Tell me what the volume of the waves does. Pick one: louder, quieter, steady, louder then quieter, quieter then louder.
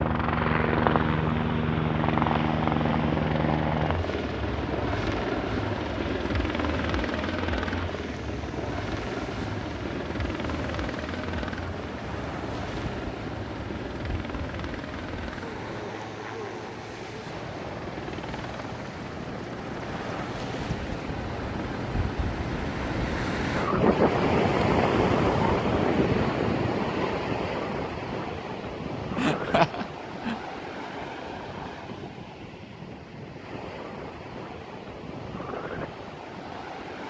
louder then quieter.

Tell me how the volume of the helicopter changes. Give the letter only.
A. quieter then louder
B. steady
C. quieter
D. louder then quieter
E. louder
C.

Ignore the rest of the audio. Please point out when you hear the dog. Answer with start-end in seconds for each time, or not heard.
not heard.